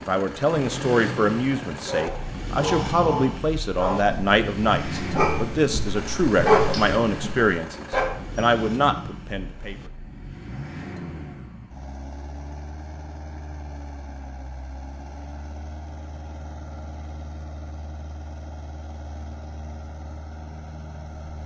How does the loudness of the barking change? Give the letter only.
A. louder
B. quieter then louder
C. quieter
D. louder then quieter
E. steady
D.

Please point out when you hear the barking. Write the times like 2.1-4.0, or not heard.
1.9-8.4.